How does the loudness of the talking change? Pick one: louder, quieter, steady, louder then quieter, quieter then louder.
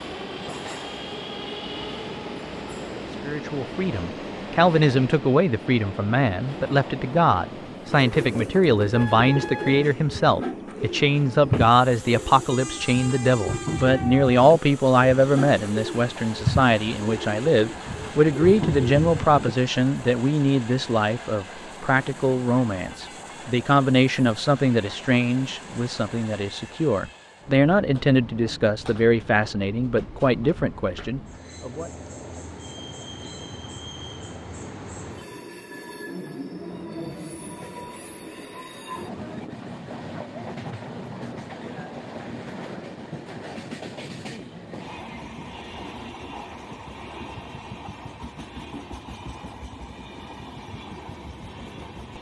steady.